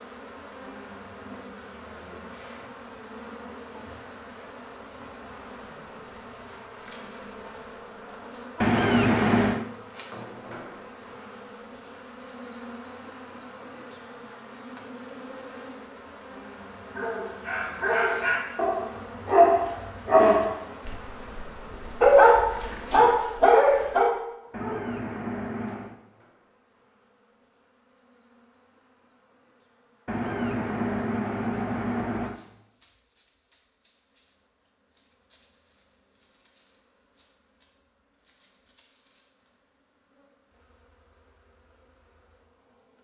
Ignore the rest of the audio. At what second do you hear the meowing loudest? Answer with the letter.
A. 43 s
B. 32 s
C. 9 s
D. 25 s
C.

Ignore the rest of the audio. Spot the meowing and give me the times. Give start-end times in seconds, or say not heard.
8.6-9.7, 24.5-25.9, 30.1-32.4.